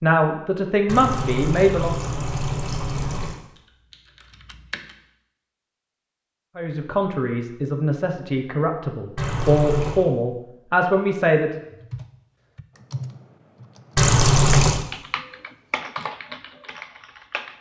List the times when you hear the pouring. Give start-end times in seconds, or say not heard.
0.8-3.4, 9.2-10.1, 13.9-14.8.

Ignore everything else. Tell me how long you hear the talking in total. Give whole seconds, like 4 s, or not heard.
7 s.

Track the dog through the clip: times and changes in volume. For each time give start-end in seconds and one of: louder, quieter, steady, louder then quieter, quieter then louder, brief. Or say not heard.
not heard.